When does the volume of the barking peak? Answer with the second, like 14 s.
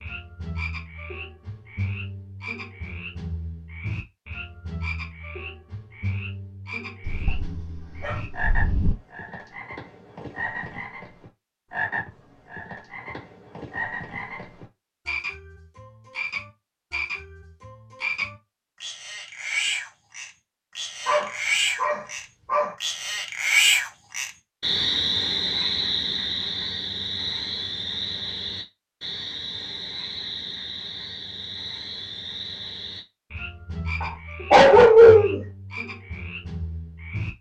35 s.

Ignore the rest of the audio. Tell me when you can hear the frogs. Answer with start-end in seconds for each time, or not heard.
0.0-37.3.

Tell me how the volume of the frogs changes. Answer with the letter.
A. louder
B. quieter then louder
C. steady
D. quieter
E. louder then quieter
E.